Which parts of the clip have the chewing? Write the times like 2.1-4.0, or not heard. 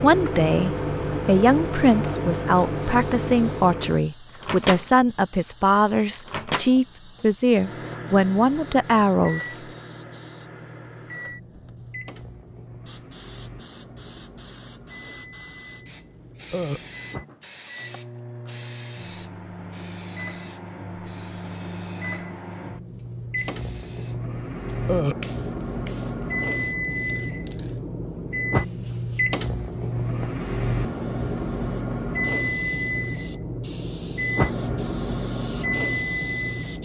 not heard.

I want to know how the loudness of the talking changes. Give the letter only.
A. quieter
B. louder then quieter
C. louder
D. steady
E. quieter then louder
D.